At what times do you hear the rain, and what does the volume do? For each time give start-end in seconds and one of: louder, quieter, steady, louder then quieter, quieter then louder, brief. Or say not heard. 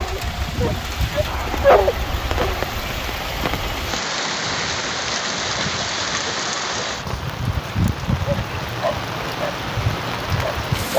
0.0-10.9 steady.